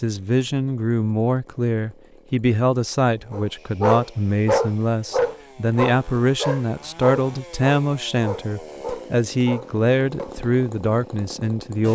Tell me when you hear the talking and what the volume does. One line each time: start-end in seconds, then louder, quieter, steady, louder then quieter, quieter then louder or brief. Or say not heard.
0.0-11.9 steady.